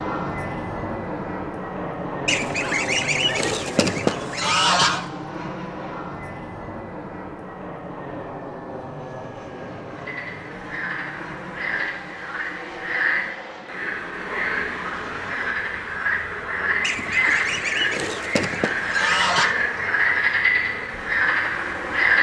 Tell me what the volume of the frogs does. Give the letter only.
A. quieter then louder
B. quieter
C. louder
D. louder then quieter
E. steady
C.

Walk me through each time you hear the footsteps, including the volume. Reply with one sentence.
The footsteps can't be heard in this clip.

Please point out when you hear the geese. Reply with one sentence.
The geese can be heard from 2.2 to 5.0 s and from 16.8 to 19.6 s.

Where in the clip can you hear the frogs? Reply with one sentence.
The frogs can be heard from 9.9 to 22.1 s.